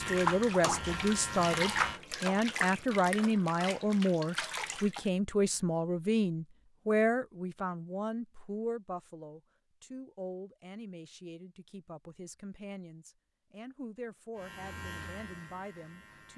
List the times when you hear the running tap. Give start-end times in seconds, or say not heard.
0.0-5.1.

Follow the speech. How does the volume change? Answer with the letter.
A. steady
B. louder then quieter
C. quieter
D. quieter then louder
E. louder
C.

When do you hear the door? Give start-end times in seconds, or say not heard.
not heard.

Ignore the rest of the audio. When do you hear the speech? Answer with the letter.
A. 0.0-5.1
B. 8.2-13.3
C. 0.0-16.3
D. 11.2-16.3
C.